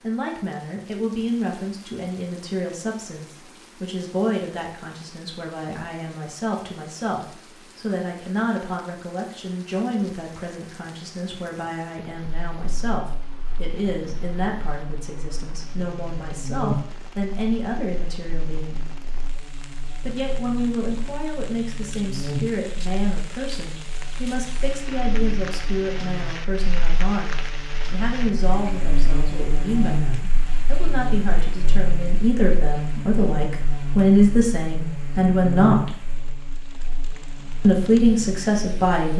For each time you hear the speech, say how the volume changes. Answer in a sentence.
The speech can be heard from 0.0 to 18.9 s, at a steady volume; from 20.0 to 35.9 s, getting louder; and briefly from 37.6 to 39.1 s.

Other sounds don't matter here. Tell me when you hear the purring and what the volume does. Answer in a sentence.
The purring can't be heard in this clip.